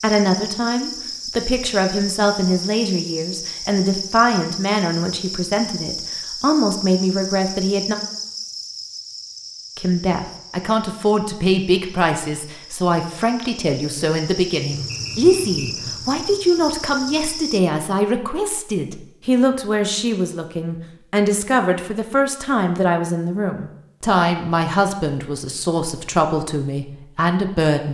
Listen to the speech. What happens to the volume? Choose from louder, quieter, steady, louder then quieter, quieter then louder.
steady.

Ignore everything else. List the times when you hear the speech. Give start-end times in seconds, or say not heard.
0.0-8.0, 9.8-27.8.